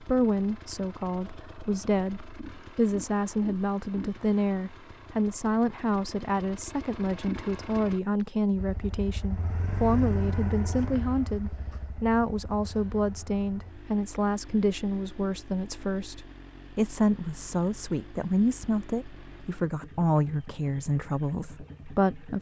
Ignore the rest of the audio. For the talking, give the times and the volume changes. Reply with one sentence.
The talking can be heard from 0.0 to 22.3 s, at a steady volume.